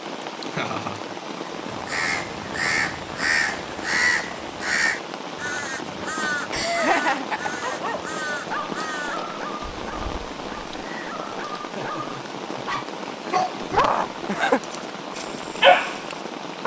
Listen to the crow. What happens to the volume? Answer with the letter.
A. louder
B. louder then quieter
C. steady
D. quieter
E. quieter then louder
D.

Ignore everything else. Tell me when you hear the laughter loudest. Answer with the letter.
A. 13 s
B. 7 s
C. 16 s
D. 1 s
B.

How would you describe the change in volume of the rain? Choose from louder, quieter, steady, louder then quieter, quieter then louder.
steady.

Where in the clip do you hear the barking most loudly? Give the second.
16 s.